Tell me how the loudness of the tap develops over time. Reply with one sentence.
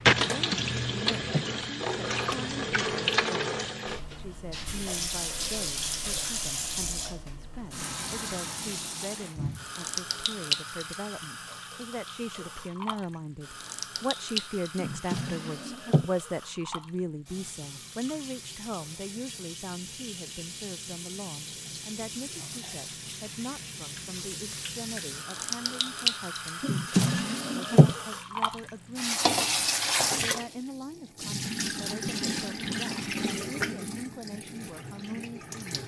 The loudness of the tap goes down, then up.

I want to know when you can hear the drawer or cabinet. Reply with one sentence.
The drawer or cabinet can be heard from 0.3 to 1.5 s, from 14.8 to 16.1 s and from 26.6 to 27.9 s.